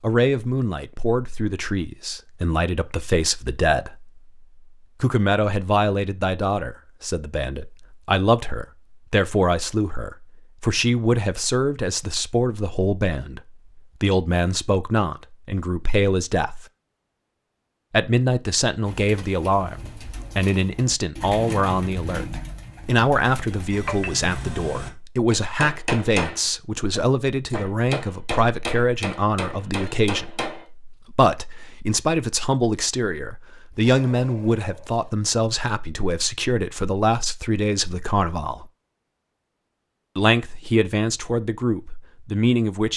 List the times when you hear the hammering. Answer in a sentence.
You can hear the hammering from 23.7 to 30.6 s.